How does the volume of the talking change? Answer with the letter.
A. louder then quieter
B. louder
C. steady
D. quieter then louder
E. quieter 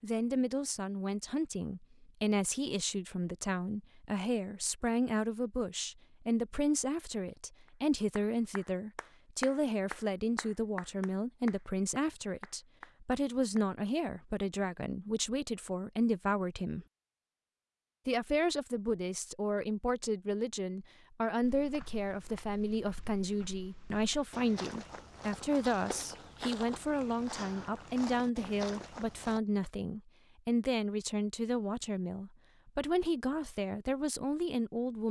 C.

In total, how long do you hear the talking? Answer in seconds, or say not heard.
34 s.